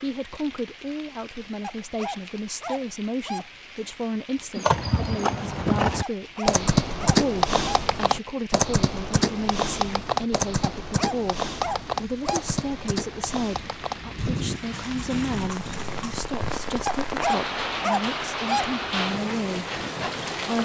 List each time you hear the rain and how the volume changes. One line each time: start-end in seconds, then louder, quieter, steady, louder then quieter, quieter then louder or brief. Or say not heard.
0.0-20.6 louder.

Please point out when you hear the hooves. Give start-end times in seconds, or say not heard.
4.5-16.5.